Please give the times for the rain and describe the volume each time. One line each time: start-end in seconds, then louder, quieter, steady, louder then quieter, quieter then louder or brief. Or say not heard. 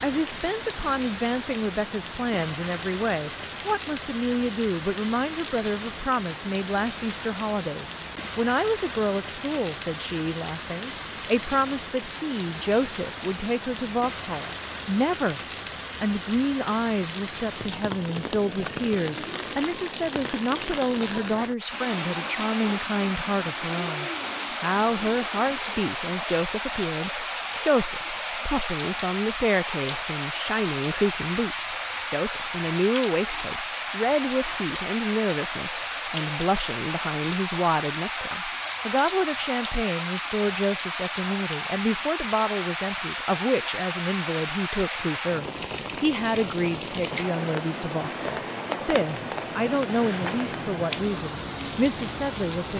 0.0-52.7 steady.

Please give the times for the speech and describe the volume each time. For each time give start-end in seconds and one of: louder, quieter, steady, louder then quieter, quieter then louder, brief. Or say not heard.
0.0-15.4 steady
16.0-52.7 steady.